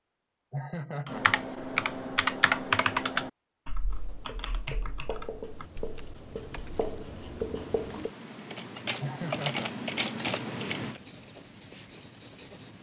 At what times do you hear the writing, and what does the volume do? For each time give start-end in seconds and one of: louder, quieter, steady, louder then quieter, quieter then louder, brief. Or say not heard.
3.9-8.1 louder
10.8-12.7 brief.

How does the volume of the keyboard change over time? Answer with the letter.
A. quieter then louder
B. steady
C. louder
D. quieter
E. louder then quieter
A.